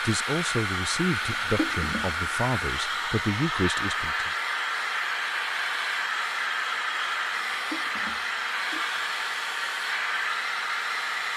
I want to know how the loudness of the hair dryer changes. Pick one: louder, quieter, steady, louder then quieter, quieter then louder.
steady.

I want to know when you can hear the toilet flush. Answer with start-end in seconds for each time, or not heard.
1.2-2.1, 7.3-8.8.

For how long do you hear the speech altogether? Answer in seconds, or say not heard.
4 s.